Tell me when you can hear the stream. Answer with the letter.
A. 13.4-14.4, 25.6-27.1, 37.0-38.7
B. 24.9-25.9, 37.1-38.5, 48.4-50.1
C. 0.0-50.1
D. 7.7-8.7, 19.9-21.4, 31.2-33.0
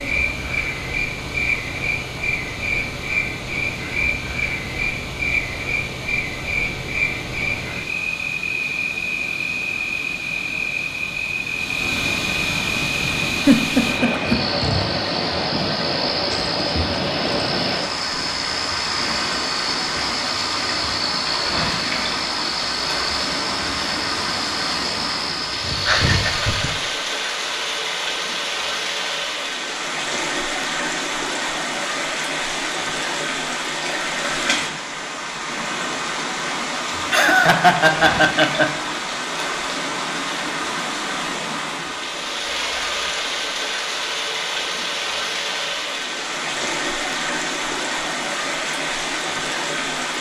C.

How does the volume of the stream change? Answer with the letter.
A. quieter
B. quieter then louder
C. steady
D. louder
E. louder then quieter
D.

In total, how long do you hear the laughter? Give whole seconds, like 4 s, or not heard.
4 s.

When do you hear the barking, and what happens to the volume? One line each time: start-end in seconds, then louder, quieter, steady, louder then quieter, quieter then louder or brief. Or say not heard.
not heard.